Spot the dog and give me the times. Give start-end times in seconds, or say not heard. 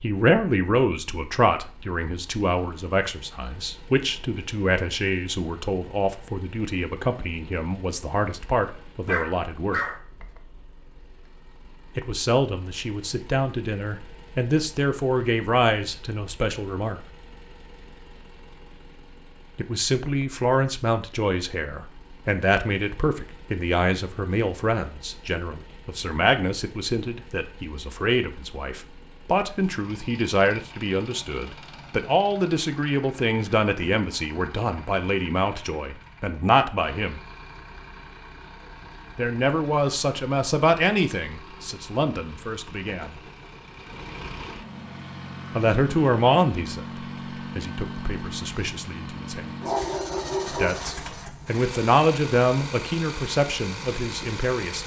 9.1-10.0, 49.6-51.1.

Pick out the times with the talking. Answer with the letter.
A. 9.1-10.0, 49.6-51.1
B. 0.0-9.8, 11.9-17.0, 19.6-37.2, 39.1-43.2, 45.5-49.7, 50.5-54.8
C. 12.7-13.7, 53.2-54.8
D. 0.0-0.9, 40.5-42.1
B.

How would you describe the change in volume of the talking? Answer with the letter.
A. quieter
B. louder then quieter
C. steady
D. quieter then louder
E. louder
C.